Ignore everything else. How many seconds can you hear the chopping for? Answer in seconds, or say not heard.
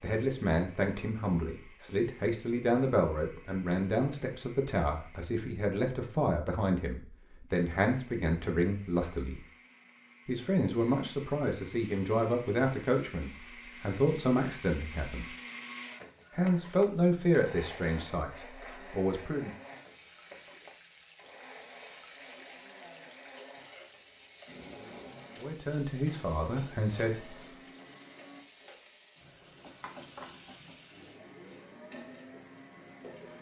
not heard.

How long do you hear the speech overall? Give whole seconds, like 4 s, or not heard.
20 s.